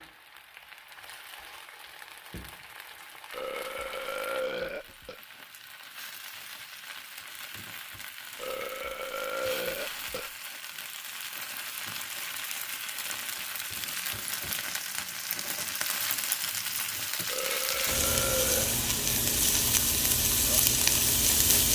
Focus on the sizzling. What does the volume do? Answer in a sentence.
The loudness of the sizzling goes up.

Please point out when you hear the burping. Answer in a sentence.
You can hear the burping from 3.3 to 5.2 s, from 8.3 to 10.3 s and from 17.2 to 18.8 s.